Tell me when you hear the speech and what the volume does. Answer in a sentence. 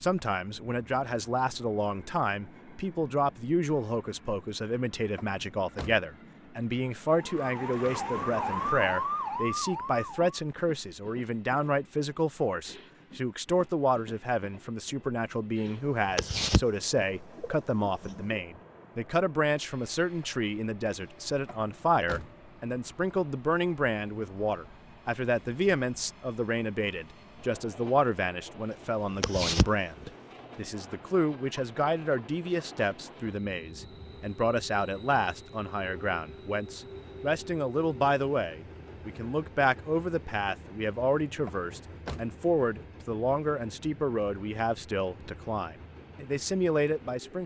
You can hear the speech from 0.0 to 47.4 s, at a steady volume.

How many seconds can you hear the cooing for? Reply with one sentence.
You can hear the cooing for 3 seconds altogether.